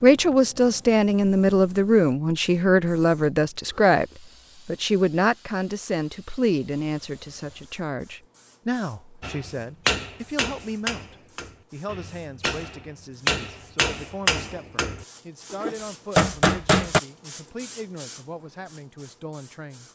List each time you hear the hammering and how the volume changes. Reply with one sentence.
The hammering can be heard from 9.2 to 17.0 s, getting quieter then louder.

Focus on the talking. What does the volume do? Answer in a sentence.
The loudness of the talking goes down.